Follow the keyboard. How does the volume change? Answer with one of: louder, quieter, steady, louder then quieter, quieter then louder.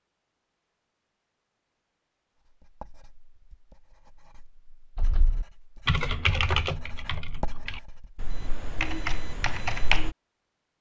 quieter then louder.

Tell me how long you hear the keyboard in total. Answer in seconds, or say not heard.
5 s.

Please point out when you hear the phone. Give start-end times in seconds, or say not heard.
not heard.